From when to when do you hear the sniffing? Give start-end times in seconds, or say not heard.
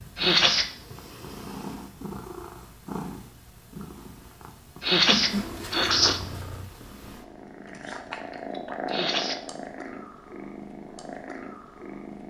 0.1-0.7, 4.8-6.2, 8.8-9.4.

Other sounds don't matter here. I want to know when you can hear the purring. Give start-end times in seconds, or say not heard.
0.0-12.2.